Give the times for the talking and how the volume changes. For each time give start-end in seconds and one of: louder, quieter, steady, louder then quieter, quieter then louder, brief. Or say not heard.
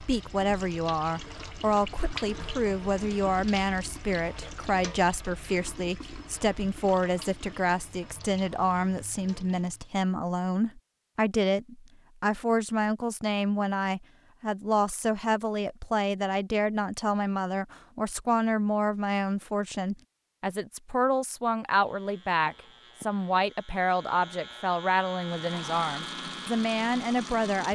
0.0-27.7 steady.